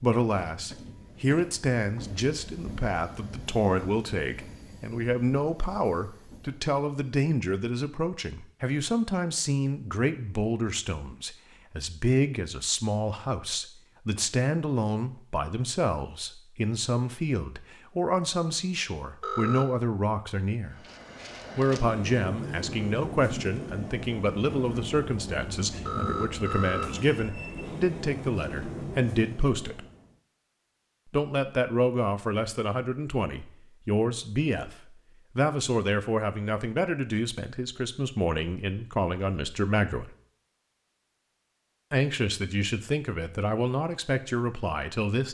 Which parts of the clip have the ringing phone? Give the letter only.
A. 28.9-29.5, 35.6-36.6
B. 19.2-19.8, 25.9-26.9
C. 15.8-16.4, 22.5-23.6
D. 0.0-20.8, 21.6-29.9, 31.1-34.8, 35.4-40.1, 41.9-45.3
B.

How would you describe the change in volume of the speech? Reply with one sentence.
The volume of the speech stays about the same.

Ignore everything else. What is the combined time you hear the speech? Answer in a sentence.
The speech can be heard for 41 seconds in total.